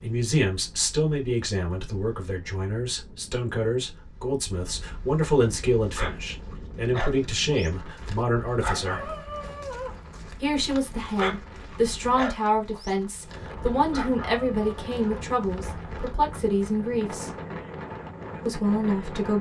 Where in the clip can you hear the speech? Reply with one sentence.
The speech can be heard from 0.0 to 9.1 s, from 10.4 to 17.3 s and from 18.4 to 19.3 s.